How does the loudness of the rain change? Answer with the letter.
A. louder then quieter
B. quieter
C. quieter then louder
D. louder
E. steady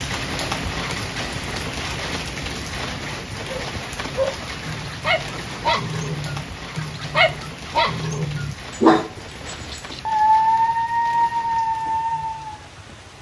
B.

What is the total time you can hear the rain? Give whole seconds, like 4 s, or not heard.
13 s.